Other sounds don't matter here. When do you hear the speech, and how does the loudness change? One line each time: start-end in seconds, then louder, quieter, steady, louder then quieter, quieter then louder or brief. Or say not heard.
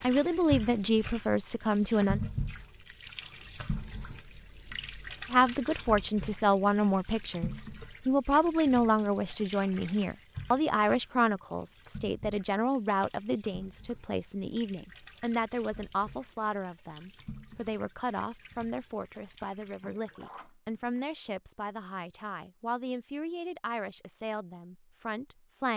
0.0-2.2 brief
5.3-25.7 quieter.